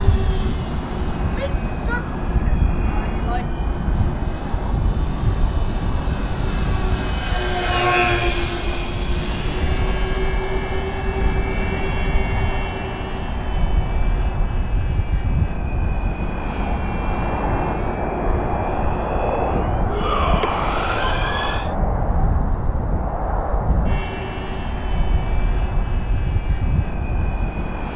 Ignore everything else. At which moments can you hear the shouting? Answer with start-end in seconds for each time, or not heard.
1.3-3.5, 19.9-21.8.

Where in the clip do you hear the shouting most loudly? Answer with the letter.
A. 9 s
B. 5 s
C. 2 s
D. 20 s
D.